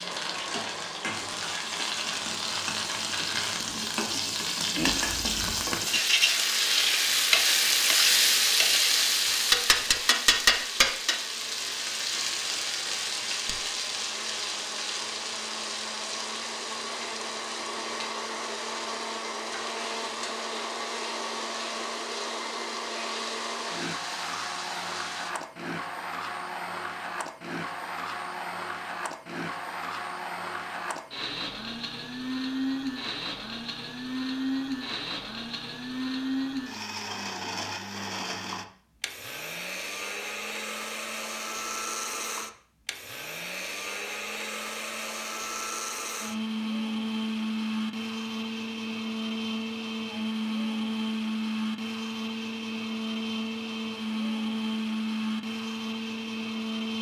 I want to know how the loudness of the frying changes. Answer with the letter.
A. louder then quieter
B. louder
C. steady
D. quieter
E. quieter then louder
A.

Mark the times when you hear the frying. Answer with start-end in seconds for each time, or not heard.
0.0-25.3.